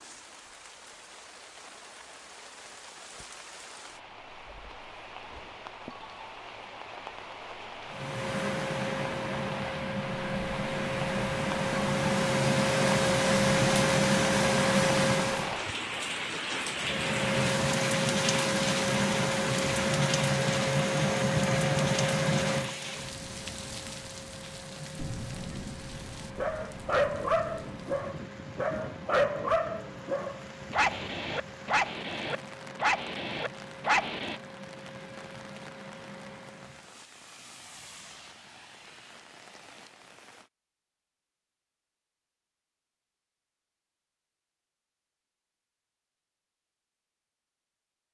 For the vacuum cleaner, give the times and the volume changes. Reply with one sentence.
You can hear the vacuum cleaner from 7.8 to 15.6 s, getting louder; and from 16.8 to 36.9 s, getting quieter.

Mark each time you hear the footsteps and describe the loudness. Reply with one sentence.
The footsteps can't be heard in this clip.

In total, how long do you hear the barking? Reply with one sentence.
You can hear the barking for 8 seconds altogether.